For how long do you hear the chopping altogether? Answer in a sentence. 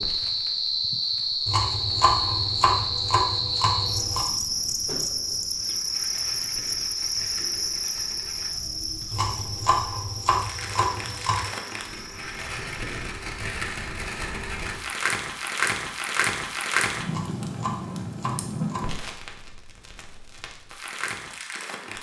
You can hear the chopping for 7 seconds altogether.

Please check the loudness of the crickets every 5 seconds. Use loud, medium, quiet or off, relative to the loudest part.
loud, loud, quiet, off, off.